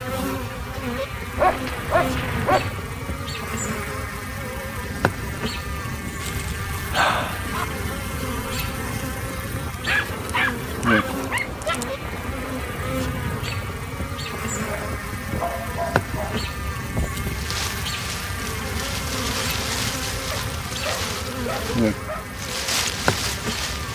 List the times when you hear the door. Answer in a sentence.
You can't hear the door here.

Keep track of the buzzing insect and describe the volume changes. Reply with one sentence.
The volume of the buzzing insect stays about the same.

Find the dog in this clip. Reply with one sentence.
The dog can be heard from 1.4 to 2.7 s, from 6.2 to 7.7 s, from 9.8 to 11.9 s, from 14.6 to 16.5 s and from 20.3 to 22.4 s.